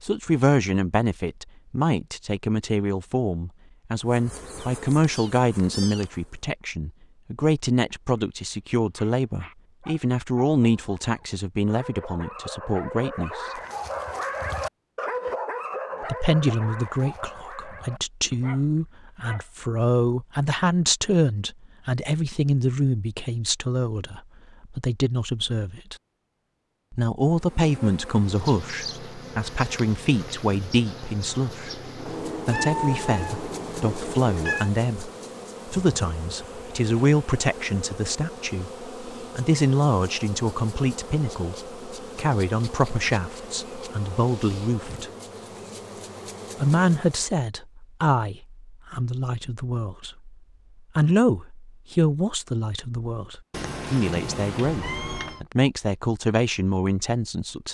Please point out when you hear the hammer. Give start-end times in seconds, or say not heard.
not heard.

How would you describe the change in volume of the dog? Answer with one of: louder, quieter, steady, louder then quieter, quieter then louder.
louder then quieter.